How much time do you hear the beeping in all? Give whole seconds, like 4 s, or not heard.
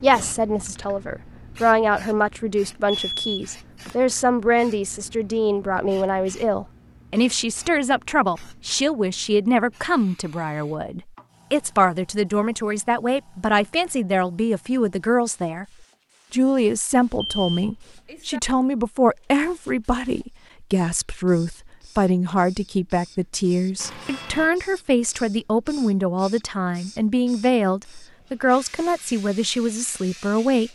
3 s.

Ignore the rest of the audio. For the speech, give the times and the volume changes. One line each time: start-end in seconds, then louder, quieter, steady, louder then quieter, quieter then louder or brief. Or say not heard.
0.0-15.7 steady
16.3-30.7 steady.